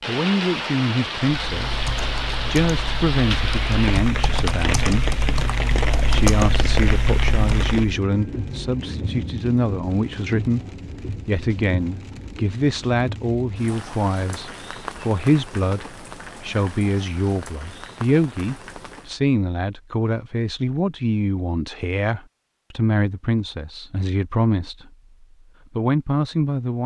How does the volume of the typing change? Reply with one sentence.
The volume of the typing goes up.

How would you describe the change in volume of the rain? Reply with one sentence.
The volume of the rain goes down.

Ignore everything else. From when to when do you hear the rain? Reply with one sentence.
You can hear the rain from 0.0 to 19.1 s.